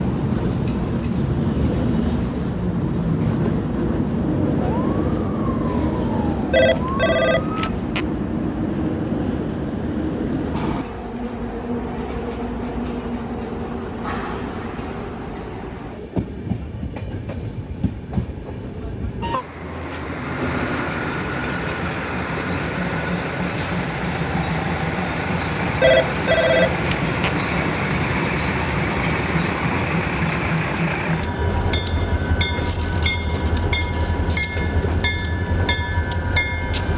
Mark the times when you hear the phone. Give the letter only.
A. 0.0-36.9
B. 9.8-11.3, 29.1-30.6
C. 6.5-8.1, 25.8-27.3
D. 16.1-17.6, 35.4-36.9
C.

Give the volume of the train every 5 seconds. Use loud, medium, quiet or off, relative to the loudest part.
loud, loud, medium, medium, loud, loud, loud, loud.